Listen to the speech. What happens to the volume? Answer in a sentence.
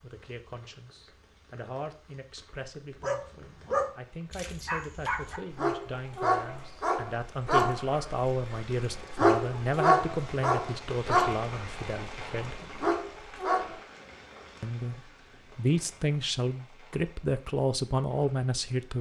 The volume of the speech goes up.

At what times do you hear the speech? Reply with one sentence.
You can hear the speech from 0.0 to 12.7 s and from 14.6 to 18.9 s.